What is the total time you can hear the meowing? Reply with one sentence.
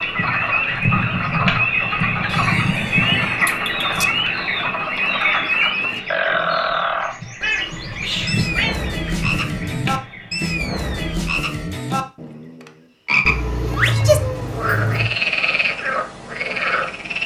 The meowing can be heard for 5 seconds in total.